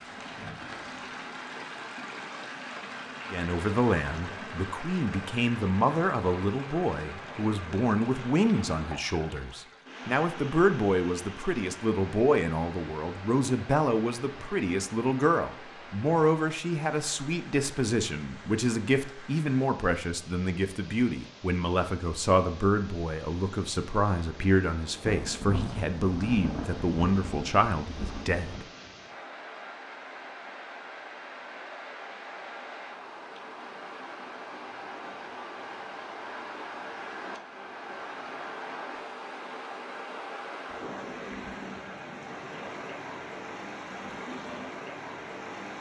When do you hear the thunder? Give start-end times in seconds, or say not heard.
25.1-28.6.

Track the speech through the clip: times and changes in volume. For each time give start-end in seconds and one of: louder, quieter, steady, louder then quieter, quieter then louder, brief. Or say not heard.
3.3-28.6 steady.